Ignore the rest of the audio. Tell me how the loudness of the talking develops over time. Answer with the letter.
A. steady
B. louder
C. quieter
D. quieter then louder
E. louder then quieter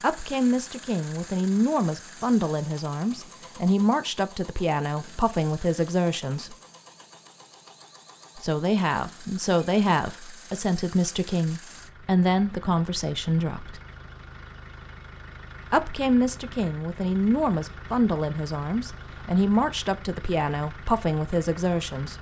A.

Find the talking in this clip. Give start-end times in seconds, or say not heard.
0.0-6.5, 8.3-13.8, 15.7-22.1.